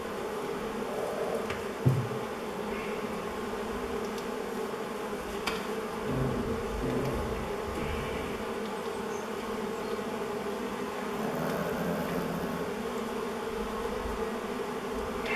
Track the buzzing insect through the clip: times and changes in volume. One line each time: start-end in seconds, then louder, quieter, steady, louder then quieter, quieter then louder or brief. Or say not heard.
0.0-15.3 steady.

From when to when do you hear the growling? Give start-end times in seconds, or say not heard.
0.8-1.4, 6.0-8.3, 11.1-12.7.